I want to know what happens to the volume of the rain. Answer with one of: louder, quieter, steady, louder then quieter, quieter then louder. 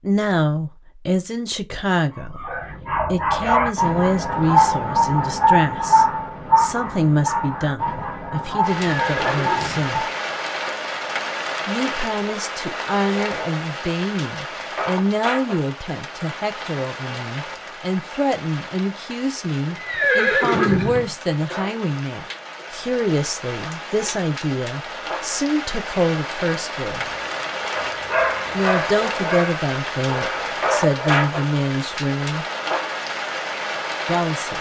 quieter then louder.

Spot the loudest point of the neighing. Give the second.
20 s.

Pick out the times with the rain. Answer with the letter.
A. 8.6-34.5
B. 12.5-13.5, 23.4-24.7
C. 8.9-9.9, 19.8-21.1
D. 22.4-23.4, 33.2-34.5
A.